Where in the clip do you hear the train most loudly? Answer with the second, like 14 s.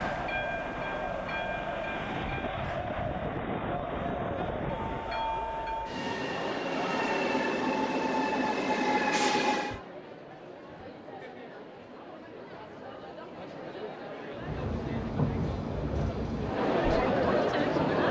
9 s.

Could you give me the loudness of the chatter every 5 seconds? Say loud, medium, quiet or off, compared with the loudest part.
medium, medium, quiet, loud.